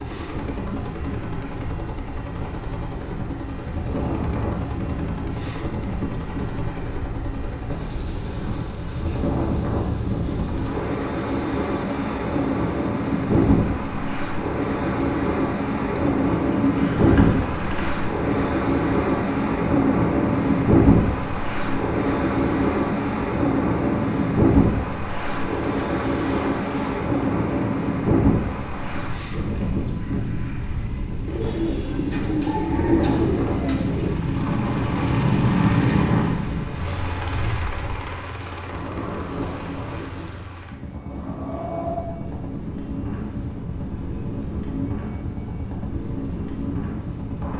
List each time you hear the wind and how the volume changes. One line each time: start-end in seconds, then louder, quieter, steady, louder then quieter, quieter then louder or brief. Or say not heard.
0.0-47.5 louder then quieter.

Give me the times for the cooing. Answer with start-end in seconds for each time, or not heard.
15.9-17.9, 31.2-34.1.